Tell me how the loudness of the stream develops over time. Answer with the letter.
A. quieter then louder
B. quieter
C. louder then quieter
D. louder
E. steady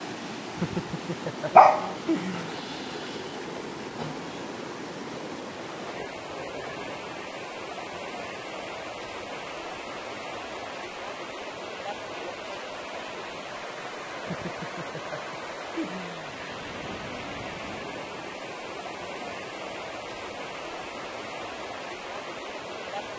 E.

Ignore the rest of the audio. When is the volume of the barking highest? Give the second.
2 s.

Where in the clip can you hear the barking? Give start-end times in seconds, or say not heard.
1.5-4.2.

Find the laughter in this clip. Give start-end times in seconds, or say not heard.
0.6-2.5, 14.2-16.4.